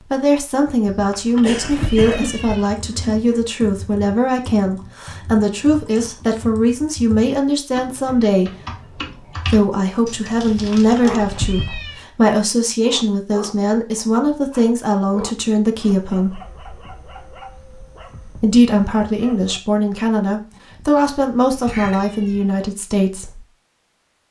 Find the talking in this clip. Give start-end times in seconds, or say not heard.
0.1-16.4, 18.4-23.4.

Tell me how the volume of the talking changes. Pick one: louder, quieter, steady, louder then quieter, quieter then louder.
steady.